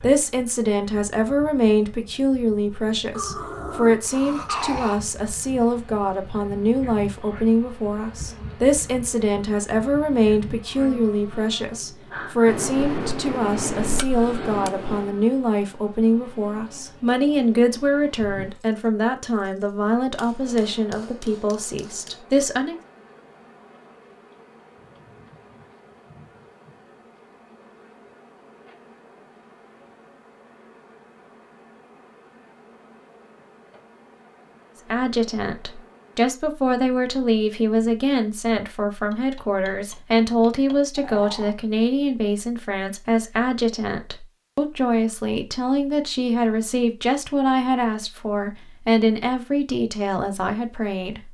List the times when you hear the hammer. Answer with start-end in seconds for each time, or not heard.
12.4-15.1, 20.1-22.2, 39.1-40.8.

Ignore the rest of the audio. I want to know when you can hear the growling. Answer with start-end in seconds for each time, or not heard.
3.1-5.0, 41.0-41.5.